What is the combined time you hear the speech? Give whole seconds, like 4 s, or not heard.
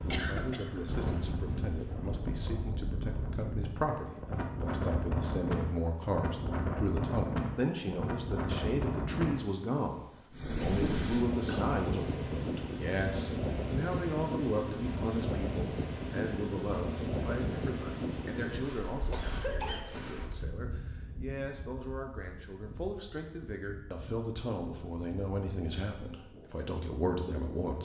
28 s.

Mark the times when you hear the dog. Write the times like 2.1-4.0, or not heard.
not heard.